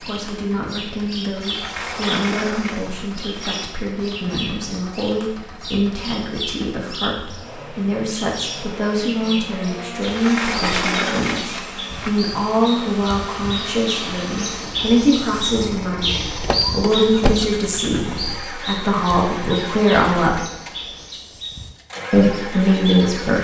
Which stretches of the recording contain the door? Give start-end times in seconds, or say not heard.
1.4-3.6, 10.0-12.1, 16.4-17.5.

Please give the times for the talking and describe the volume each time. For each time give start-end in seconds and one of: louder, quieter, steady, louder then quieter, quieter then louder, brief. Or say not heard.
0.0-20.4 louder
22.1-23.3 brief.